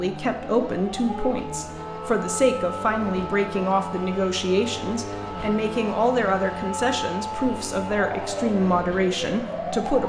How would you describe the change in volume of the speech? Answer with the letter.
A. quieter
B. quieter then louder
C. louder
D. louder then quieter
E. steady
E.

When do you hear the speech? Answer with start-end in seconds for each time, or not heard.
0.0-10.0.